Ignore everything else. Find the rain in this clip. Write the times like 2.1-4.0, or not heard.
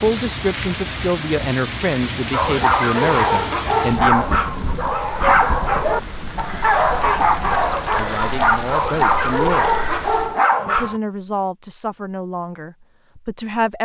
0.0-10.4.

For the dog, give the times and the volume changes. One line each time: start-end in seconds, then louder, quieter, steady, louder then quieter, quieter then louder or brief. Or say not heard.
2.3-11.0 steady.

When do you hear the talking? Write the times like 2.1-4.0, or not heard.
0.0-4.2, 7.8-9.7, 10.7-13.8.